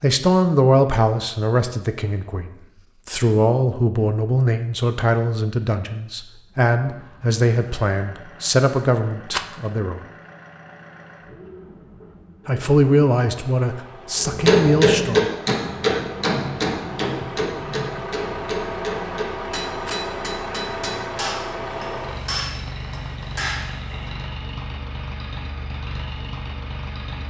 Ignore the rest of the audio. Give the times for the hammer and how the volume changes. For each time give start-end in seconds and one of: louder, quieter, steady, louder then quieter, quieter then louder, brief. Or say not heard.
14.2-24.1 quieter.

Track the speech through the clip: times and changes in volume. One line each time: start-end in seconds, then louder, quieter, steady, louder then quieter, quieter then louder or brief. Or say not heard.
0.0-2.5 brief
3.0-10.0 steady
12.4-15.3 brief.